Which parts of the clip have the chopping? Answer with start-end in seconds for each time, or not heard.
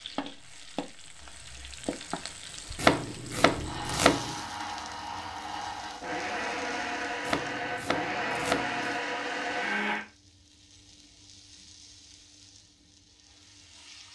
2.8-4.4, 7.2-9.0.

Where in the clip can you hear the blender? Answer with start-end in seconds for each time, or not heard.
3.6-10.1.